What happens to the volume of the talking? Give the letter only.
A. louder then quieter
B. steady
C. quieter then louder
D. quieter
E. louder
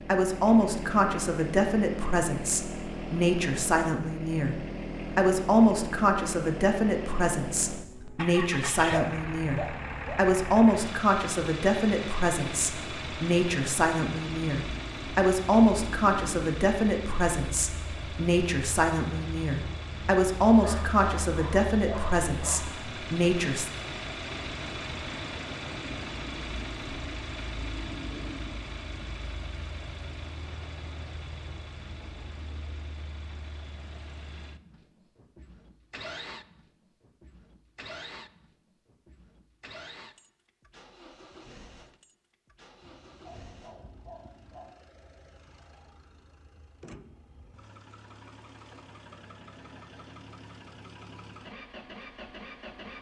B.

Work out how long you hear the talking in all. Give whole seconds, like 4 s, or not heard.
24 s.